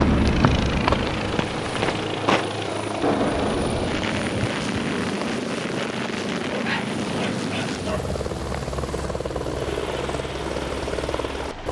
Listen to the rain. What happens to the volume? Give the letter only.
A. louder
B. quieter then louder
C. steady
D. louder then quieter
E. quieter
E.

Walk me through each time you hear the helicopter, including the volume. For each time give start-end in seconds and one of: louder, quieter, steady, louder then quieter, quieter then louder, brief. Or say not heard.
0.0-11.6 steady.